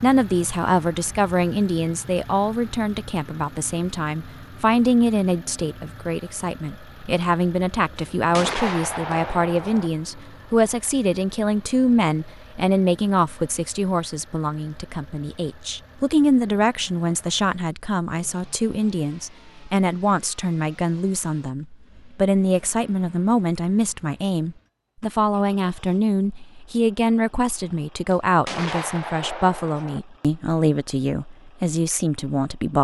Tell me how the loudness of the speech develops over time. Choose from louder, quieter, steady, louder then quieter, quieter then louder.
steady.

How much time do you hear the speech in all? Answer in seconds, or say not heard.
33 s.